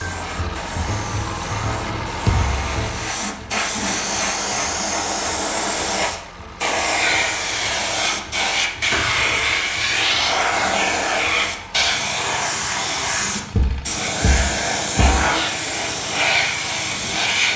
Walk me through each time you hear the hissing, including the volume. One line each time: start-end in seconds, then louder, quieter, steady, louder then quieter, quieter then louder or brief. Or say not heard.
0.0-17.5 louder.